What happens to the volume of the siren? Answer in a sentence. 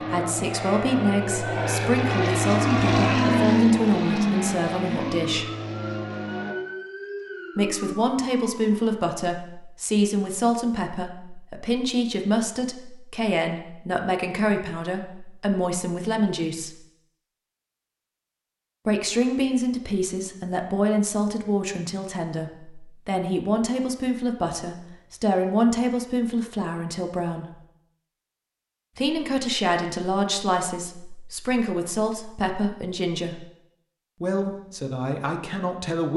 The volume of the siren goes up, then down.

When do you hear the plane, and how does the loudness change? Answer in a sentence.
You can hear the plane from 0.0 to 6.5 s, getting louder then quieter.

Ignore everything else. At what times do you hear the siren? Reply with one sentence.
You can hear the siren from 0.0 to 8.8 s.